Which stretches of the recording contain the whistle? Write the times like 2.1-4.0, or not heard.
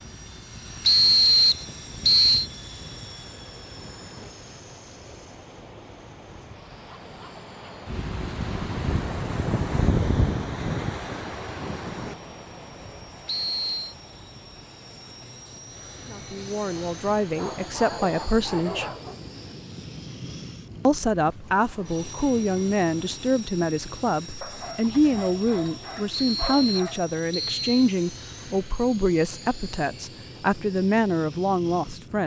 0.8-2.5, 13.2-13.9, 26.1-27.9.